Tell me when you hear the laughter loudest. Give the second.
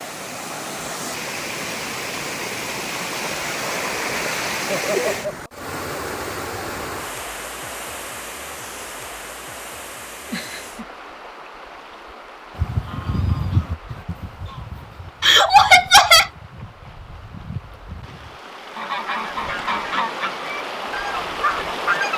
16 s.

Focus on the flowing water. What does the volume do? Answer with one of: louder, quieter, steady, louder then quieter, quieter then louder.
quieter then louder.